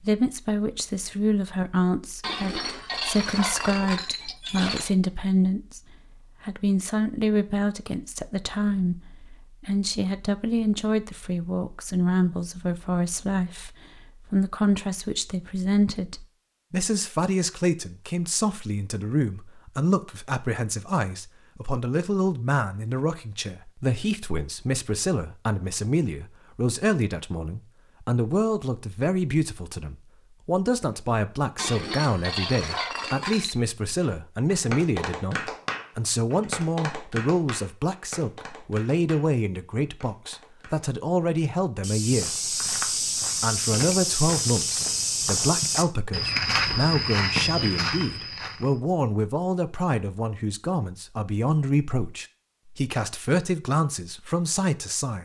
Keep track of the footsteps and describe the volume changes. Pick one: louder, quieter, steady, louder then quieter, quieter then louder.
steady.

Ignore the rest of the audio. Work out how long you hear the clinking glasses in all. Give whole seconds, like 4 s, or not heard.
6 s.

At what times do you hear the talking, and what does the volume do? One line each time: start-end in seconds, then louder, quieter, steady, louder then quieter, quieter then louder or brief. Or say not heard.
0.0-42.5 steady
43.4-55.2 steady.